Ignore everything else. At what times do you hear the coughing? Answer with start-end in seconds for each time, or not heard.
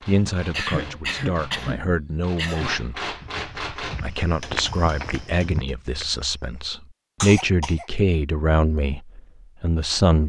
0.5-2.8, 7.2-7.8.